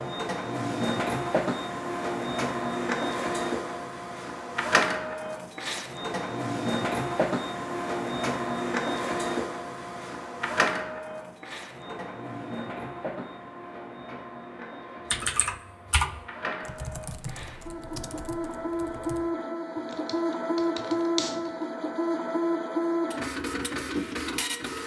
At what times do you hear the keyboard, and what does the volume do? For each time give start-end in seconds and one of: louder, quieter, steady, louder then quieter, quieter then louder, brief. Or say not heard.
15.1-21.6 quieter then louder.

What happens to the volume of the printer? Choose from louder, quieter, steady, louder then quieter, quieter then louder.
quieter then louder.